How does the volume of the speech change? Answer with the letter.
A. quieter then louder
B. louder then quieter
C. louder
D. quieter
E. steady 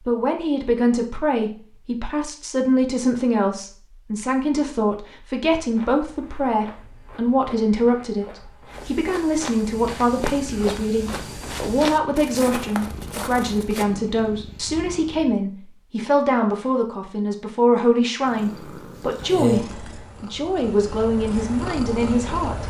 E.